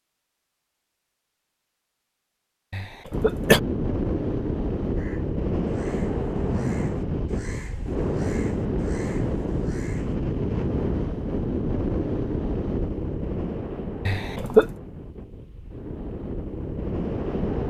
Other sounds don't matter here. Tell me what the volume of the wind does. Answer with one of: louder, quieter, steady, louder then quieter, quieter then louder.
quieter.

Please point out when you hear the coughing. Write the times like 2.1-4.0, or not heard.
2.7-3.6, 14.1-14.7.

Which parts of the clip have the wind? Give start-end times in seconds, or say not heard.
3.1-17.6.